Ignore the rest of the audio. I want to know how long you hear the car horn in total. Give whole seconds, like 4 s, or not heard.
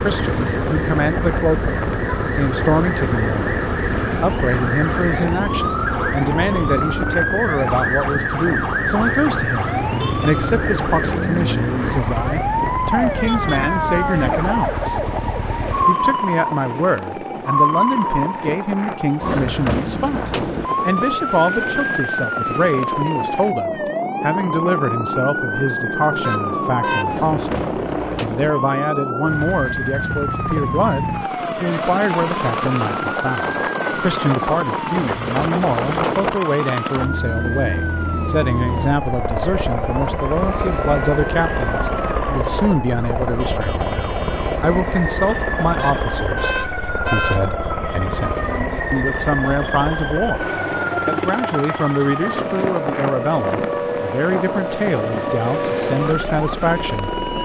4 s.